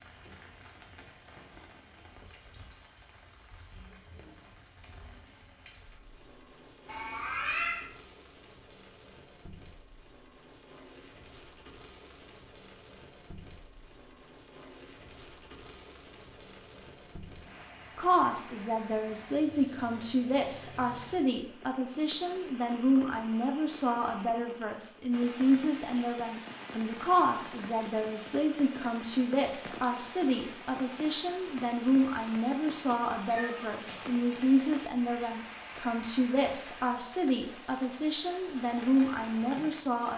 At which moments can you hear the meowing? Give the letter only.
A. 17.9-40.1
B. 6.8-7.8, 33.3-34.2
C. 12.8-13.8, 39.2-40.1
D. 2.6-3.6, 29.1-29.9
B.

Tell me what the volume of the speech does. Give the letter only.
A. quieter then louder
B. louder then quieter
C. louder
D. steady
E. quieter
D.